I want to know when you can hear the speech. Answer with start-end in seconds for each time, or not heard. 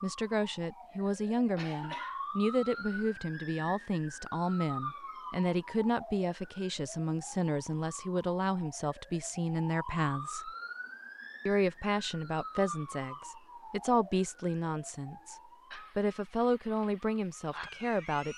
0.0-10.5, 11.4-18.3.